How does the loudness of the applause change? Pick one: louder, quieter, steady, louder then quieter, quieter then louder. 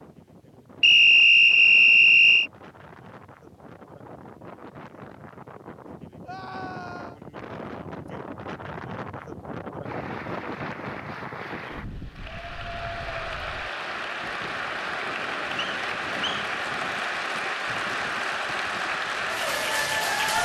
louder.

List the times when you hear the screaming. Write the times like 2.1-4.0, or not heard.
6.2-7.2.